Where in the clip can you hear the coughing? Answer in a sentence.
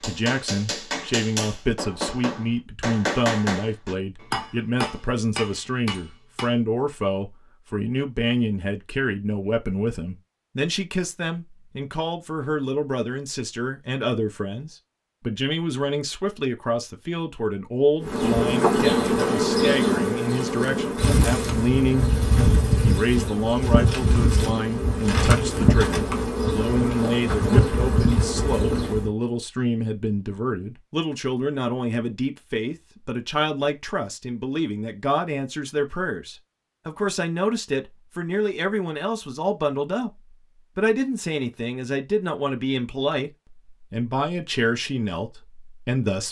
The coughing can't be heard in this clip.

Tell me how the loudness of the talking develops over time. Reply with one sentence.
The volume of the talking stays about the same.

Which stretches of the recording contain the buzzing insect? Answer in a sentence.
You can hear the buzzing insect from 18.0 to 29.1 s.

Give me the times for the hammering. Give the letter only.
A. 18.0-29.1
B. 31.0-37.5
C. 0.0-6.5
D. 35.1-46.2
C.